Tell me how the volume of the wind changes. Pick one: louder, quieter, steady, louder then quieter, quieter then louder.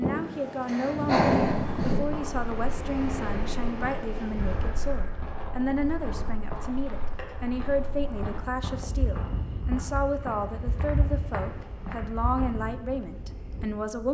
quieter.